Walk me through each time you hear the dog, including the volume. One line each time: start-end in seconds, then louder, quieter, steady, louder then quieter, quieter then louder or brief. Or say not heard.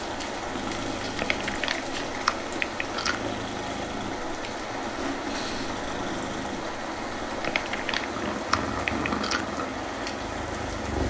not heard.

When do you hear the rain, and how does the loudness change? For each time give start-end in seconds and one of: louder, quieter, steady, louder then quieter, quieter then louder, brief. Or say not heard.
0.0-11.0 steady.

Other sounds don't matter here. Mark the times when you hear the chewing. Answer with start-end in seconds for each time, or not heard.
1.1-3.1, 7.4-9.4.